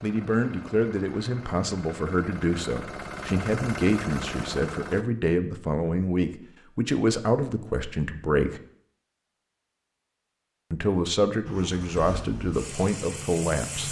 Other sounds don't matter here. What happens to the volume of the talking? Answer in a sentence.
The volume of the talking stays about the same.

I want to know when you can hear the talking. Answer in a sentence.
You can hear the talking from 0.0 to 8.6 s and from 10.7 to 13.8 s.